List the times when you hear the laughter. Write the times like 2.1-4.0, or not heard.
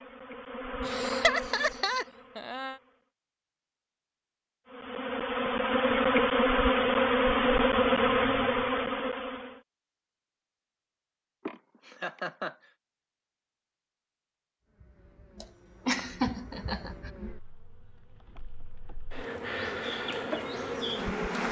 0.8-2.8, 11.4-12.7, 15.4-17.1.